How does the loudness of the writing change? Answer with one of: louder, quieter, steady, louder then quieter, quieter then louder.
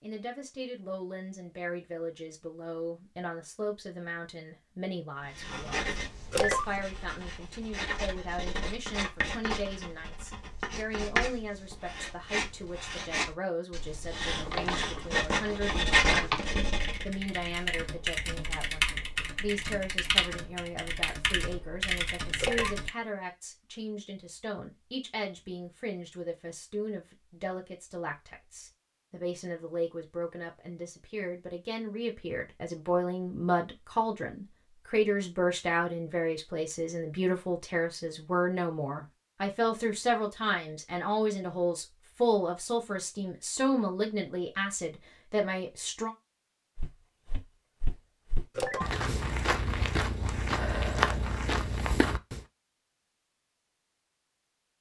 louder.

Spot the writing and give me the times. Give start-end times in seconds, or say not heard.
5.2-17.1.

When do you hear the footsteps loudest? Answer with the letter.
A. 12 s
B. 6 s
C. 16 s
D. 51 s
D.